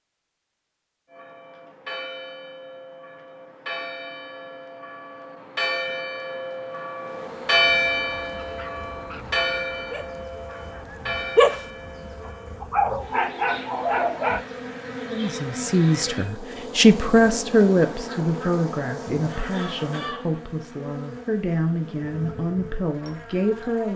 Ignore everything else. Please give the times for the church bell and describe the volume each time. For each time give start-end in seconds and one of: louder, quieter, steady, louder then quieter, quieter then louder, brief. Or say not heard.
1.1-12.7 louder then quieter.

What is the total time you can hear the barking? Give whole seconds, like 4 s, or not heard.
5 s.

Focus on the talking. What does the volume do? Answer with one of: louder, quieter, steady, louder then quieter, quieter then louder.
quieter.